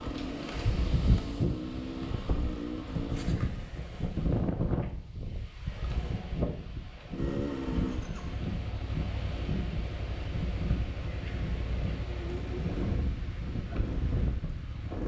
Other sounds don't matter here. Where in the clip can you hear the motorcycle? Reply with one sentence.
The motorcycle can be heard from 0.0 to 3.4 s and from 7.1 to 15.0 s.